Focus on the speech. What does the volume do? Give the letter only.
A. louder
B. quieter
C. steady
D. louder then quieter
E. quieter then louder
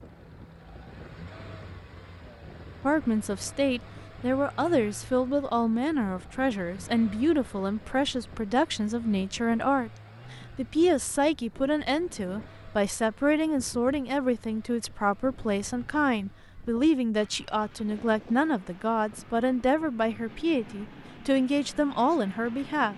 C.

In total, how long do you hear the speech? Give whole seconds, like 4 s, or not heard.
20 s.